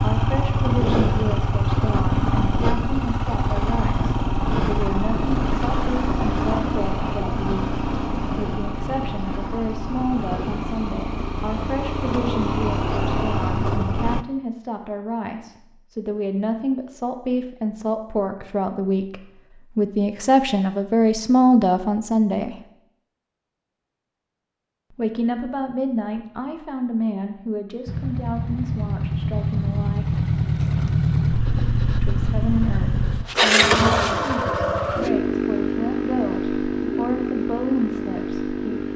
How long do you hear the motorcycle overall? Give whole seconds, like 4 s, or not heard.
25 s.